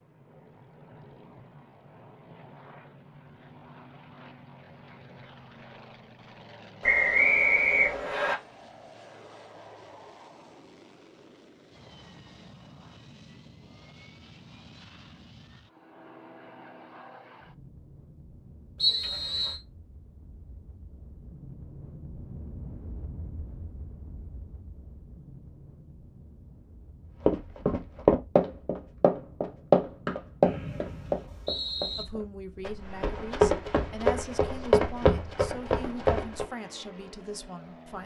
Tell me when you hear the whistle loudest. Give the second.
7 s.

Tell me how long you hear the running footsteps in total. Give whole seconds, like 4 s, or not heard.
9 s.